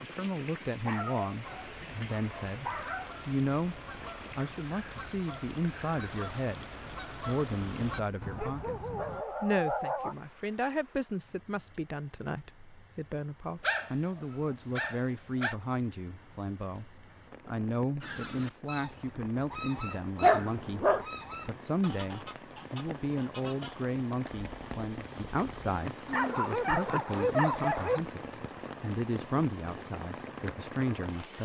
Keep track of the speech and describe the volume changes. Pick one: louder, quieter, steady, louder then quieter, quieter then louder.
steady.